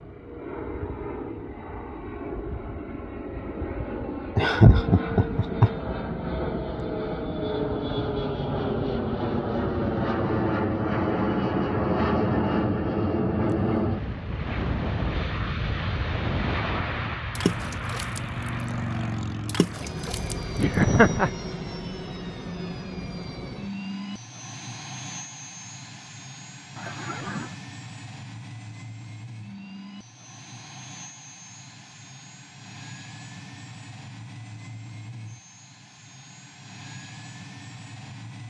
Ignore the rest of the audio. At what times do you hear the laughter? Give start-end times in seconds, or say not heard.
4.3-5.7, 20.6-21.4, 26.8-27.5.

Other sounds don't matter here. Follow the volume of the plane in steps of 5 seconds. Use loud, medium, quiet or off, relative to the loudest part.
medium, loud, loud, medium, medium, quiet, quiet, quiet.